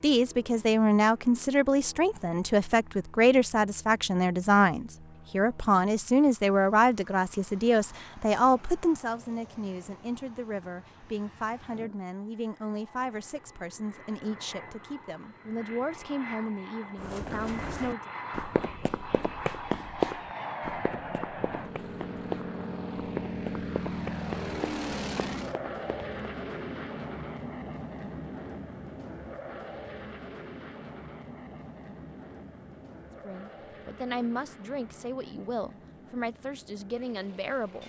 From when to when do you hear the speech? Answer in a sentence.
You can hear the speech from 0.0 to 18.1 s and from 33.2 to 37.8 s.